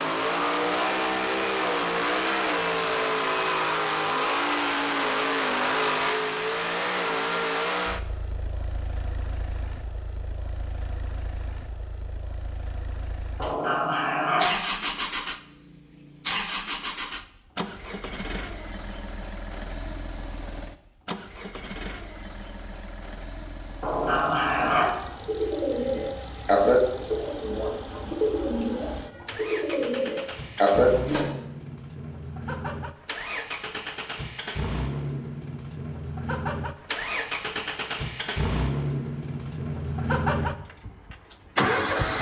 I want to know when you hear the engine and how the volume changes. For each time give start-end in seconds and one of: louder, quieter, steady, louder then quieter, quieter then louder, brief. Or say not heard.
0.0-42.1 quieter then louder.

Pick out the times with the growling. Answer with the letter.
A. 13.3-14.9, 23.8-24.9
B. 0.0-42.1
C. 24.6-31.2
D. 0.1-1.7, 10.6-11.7
A.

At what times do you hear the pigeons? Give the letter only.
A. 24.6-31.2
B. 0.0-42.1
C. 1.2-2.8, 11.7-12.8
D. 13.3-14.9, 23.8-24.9
A.